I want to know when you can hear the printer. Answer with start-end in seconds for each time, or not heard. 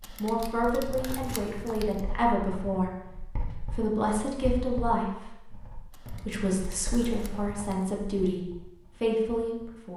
not heard.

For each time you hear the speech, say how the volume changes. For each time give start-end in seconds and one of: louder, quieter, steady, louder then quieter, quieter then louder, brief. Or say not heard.
0.2-9.9 steady.